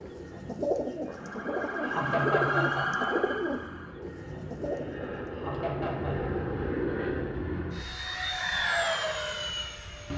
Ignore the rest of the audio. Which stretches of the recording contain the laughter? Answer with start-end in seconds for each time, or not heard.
1.8-3.2, 5.3-6.3.